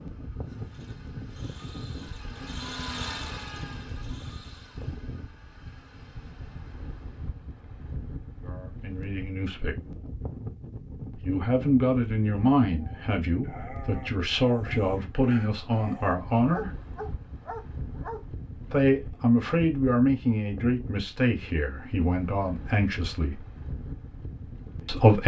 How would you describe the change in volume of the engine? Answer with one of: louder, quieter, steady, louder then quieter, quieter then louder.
louder then quieter.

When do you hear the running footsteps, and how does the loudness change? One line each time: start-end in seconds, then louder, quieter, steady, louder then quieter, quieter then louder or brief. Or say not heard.
not heard.